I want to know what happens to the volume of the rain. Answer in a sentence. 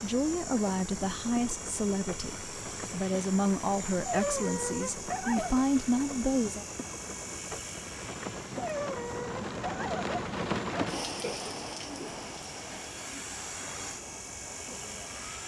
The volume of the rain goes up, then down.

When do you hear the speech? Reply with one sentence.
You can hear the speech from 0.0 to 6.7 s.